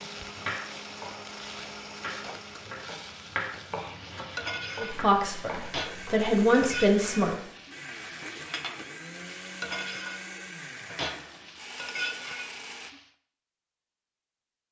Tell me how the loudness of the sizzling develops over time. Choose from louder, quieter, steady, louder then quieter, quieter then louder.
louder.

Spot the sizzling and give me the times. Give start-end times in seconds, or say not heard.
0.0-13.1.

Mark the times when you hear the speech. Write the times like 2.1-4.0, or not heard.
4.8-7.3.